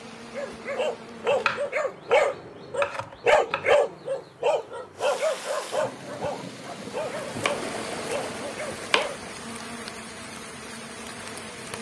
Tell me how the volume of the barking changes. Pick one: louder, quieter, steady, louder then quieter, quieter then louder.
quieter.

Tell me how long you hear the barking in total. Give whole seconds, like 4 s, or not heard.
9 s.